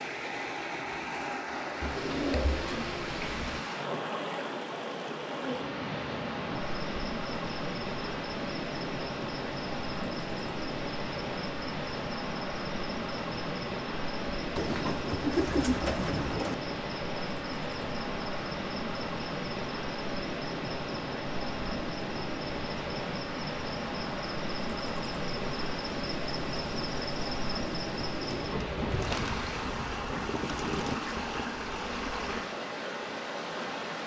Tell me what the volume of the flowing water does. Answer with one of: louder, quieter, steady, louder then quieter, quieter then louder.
steady.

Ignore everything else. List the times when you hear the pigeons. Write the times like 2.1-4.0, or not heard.
1.8-3.6, 14.6-16.6, 28.2-31.0.